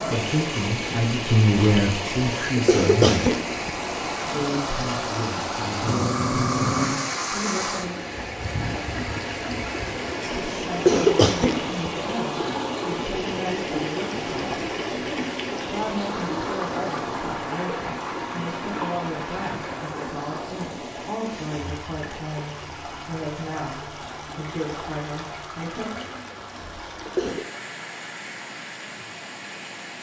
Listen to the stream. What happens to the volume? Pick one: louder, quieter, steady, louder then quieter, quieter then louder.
quieter.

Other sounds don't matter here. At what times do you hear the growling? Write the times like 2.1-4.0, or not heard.
5.8-7.0.